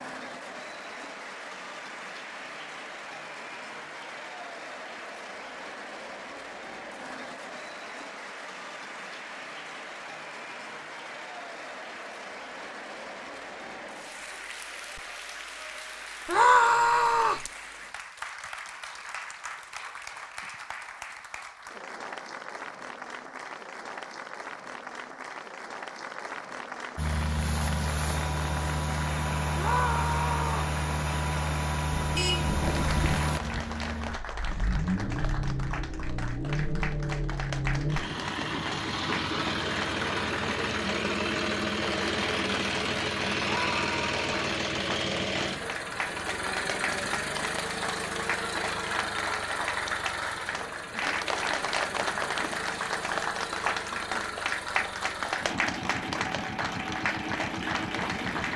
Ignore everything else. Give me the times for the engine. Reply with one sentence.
You can hear the engine from 26.9 to 58.5 s.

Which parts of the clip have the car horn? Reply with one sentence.
You can hear the car horn from 31.9 to 33.2 s.